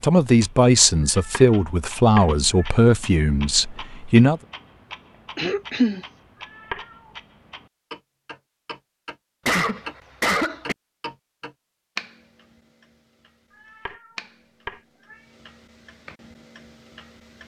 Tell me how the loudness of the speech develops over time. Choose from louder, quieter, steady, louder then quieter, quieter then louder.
quieter.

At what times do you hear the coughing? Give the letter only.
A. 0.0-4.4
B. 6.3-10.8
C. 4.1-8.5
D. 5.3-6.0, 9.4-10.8
D.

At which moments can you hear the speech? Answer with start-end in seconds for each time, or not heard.
0.0-4.4.